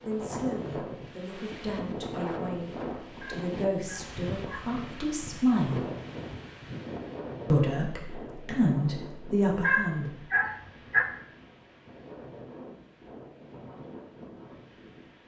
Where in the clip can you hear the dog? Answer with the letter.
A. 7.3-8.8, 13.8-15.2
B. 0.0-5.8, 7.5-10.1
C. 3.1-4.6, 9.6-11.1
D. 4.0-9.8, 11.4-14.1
C.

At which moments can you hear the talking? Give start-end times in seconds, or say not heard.
0.0-5.8, 7.5-10.1.